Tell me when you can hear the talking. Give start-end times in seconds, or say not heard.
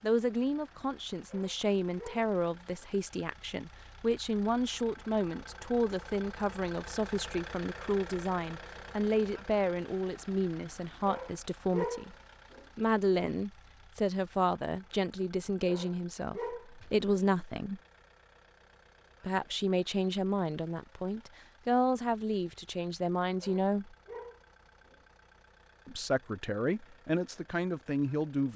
0.0-12.1, 12.8-17.8, 19.2-23.9, 25.9-28.5.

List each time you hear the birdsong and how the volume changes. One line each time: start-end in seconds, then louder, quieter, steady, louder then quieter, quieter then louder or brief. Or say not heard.
not heard.